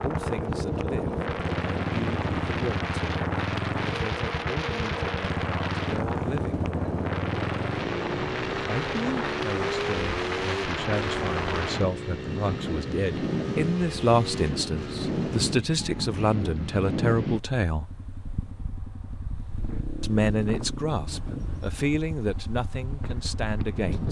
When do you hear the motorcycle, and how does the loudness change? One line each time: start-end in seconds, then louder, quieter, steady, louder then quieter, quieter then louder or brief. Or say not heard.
0.0-24.0 quieter.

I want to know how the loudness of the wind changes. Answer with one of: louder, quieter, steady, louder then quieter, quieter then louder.
quieter.